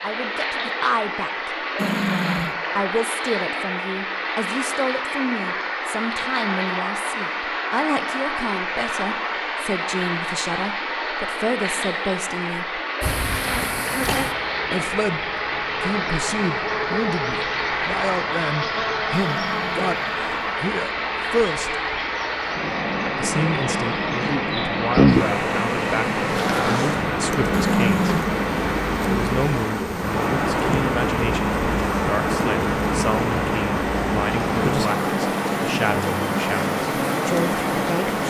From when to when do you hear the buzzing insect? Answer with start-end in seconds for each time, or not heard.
13.0-38.2.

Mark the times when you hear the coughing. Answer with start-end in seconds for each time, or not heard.
not heard.